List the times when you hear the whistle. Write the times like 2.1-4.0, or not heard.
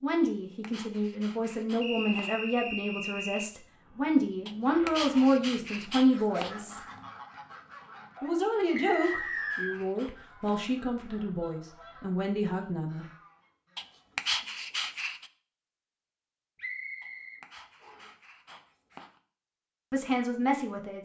1.8-3.5, 8.8-9.8, 16.6-18.1.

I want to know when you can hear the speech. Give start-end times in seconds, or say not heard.
0.0-6.8, 8.2-13.1, 19.9-21.0.